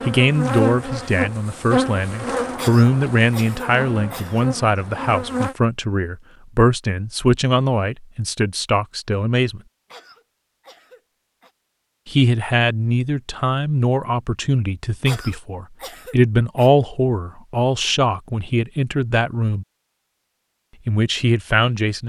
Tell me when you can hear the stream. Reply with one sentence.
The stream can't be heard in this clip.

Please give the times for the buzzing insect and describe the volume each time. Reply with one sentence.
You can hear the buzzing insect from 0.0 to 5.5 s, getting quieter.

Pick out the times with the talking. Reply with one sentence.
The talking can be heard from 0.0 to 9.6 s, from 12.1 to 19.6 s and from 20.9 to 22.0 s.